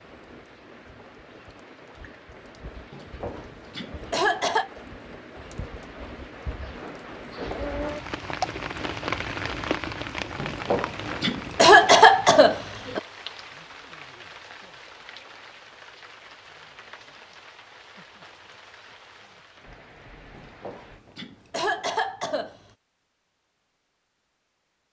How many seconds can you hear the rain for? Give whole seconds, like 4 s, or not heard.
21 s.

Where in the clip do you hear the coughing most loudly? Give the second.
12 s.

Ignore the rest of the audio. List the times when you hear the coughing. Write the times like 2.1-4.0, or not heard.
2.9-4.7, 10.4-13.0, 20.3-22.6.